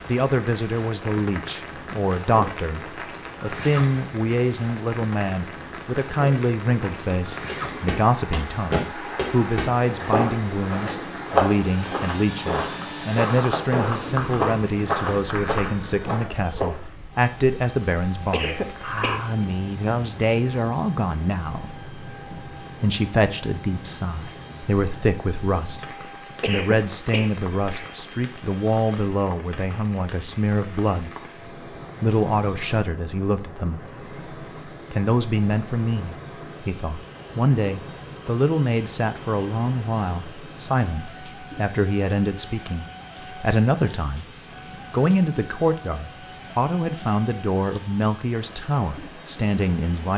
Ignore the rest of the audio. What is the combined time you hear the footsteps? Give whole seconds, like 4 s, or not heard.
9 s.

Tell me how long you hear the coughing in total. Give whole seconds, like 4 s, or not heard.
3 s.